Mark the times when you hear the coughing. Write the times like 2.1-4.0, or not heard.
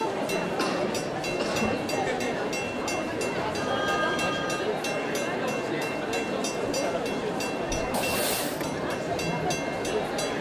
0.6-1.8, 7.9-8.7.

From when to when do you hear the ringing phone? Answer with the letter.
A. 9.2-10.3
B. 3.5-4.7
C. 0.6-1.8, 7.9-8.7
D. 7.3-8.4
B.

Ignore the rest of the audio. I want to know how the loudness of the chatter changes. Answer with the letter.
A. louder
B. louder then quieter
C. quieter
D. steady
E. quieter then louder
D.